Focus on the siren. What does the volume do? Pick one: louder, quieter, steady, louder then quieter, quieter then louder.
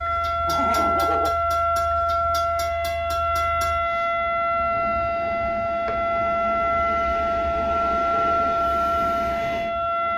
steady.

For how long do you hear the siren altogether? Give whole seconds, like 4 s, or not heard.
10 s.